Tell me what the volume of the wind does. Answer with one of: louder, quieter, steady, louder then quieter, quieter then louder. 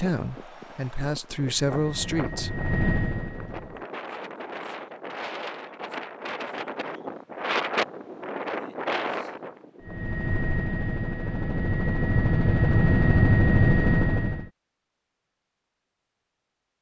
louder.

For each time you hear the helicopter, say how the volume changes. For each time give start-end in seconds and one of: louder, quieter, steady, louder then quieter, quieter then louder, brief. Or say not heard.
1.6-3.9 brief
9.8-14.5 louder.